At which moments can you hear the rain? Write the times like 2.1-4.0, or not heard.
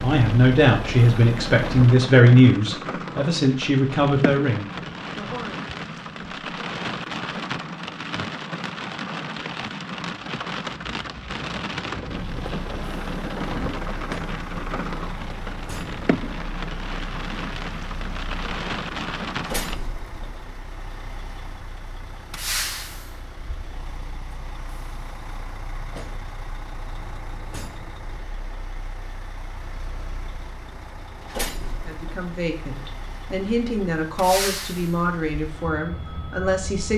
0.0-19.8.